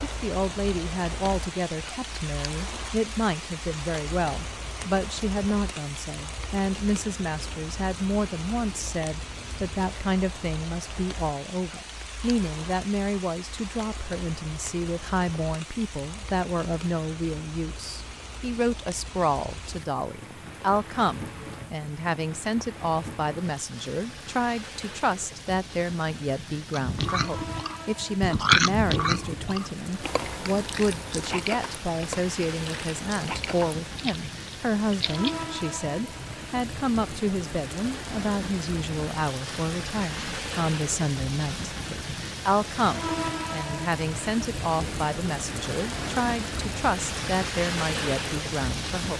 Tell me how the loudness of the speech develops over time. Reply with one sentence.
The volume of the speech stays about the same.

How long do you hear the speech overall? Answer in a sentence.
The speech can be heard for 49 seconds in total.